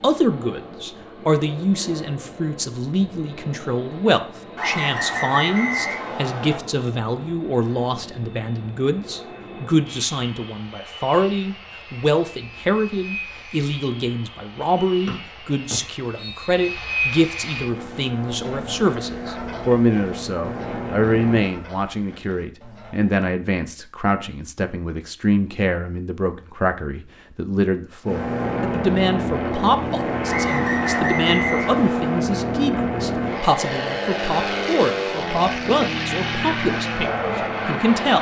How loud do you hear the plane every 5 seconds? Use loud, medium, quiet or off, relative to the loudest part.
quiet, quiet, quiet, medium, medium, loud, loud, loud.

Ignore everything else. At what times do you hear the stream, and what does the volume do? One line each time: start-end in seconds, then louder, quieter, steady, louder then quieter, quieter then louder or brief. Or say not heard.
not heard.